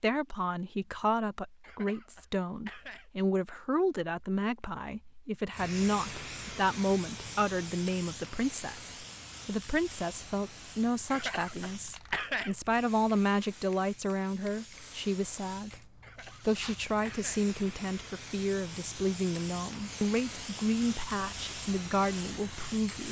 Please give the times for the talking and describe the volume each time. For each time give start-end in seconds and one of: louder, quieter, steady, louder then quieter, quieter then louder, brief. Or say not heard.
0.0-15.8 steady
16.4-23.0 steady.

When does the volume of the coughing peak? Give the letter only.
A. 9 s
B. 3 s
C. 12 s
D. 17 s
C.